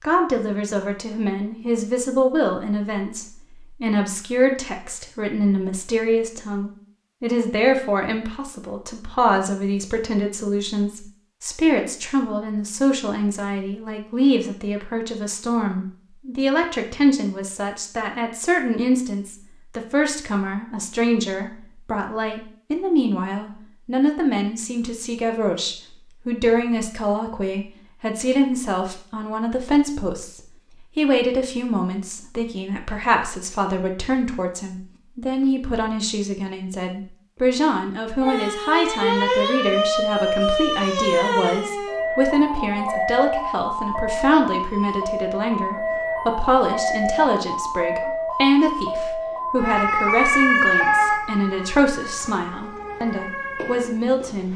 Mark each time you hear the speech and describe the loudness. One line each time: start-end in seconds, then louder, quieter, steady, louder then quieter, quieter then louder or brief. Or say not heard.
0.0-54.5 steady.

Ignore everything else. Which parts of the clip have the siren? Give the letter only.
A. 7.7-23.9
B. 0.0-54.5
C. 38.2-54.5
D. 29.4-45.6
C.